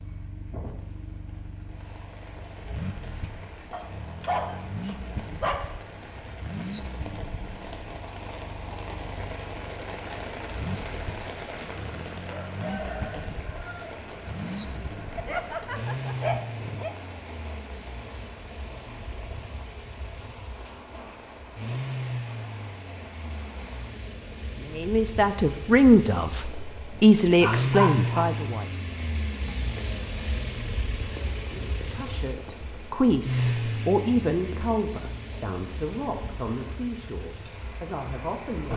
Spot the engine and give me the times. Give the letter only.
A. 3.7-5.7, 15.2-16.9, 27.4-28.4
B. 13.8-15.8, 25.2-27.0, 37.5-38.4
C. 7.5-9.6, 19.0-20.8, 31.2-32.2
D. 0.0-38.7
D.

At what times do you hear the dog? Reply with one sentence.
The dog can be heard from 3.7 to 5.7 s, from 15.2 to 16.9 s and from 27.4 to 28.4 s.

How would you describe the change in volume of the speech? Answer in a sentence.
The loudness of the speech goes down.